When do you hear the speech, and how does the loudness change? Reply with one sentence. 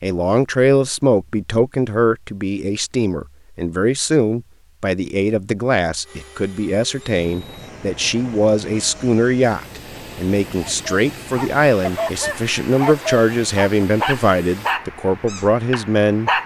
You can hear the speech from 0.0 to 16.3 s, at a steady volume.